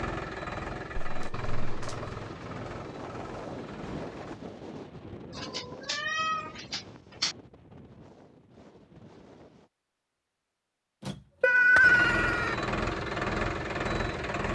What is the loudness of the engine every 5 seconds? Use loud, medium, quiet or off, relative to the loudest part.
medium, off, loud.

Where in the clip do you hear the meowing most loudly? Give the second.
12 s.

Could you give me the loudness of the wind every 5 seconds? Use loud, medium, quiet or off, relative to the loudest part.
loud, medium, off.